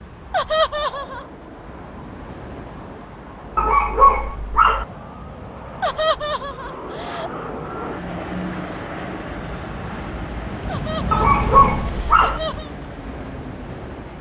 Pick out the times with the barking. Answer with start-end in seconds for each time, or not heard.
3.5-4.8, 11.1-12.4.